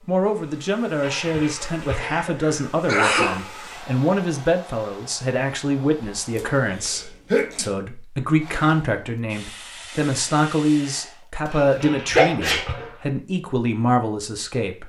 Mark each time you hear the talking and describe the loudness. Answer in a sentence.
You can hear the talking from 0.1 to 14.8 s, at a steady volume.